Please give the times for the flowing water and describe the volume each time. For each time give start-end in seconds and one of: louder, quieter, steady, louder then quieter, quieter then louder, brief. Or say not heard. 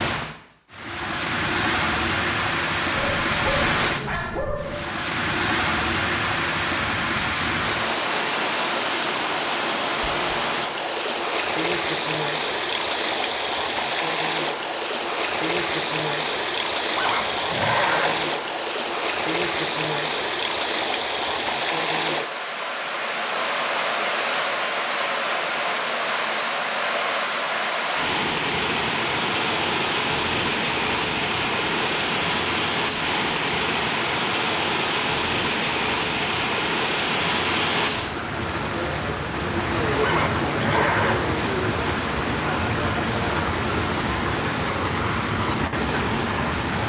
0.0-46.8 steady.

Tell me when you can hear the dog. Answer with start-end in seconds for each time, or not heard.
3.0-4.8.